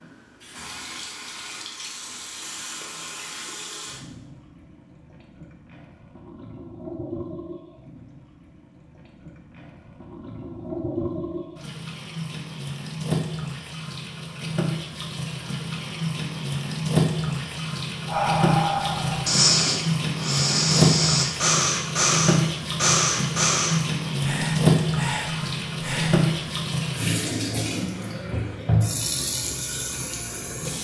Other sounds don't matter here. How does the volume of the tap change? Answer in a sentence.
The loudness of the tap goes up.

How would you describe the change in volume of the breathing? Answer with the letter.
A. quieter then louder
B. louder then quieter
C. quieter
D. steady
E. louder
C.